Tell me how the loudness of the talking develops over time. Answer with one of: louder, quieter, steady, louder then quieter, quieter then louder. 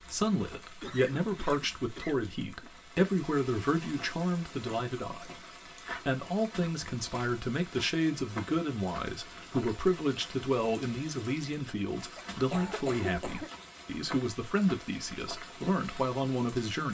steady.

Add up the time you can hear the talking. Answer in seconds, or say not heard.
17 s.